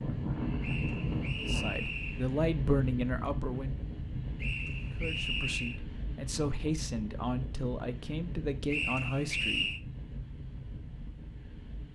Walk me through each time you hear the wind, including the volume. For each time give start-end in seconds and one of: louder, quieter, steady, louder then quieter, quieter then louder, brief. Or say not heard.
0.0-11.9 quieter.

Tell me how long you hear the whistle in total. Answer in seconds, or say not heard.
4 s.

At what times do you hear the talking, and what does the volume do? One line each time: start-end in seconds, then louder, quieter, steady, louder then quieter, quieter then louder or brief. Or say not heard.
1.4-3.8 brief
5.0-9.7 louder.